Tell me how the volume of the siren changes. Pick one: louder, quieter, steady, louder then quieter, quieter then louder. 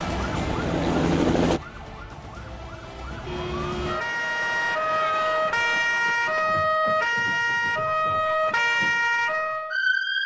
louder.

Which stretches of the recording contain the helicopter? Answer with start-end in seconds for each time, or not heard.
0.1-1.6.